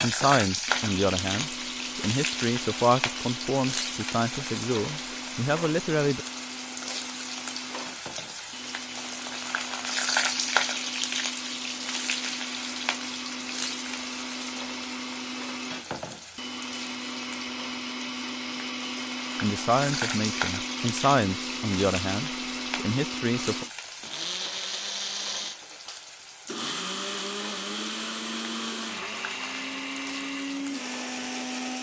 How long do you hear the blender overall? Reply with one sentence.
You can hear the blender for 32 seconds altogether.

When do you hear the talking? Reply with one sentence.
You can hear the talking from 0.0 to 6.2 s and from 19.4 to 23.6 s.